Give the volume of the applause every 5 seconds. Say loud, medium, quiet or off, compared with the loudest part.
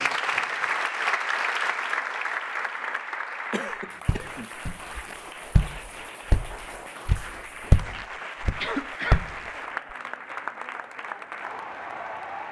loud, medium, medium.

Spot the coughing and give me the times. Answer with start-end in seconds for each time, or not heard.
3.5-4.5, 8.6-9.2.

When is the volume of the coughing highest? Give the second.
9 s.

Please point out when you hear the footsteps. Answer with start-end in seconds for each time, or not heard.
4.0-9.5.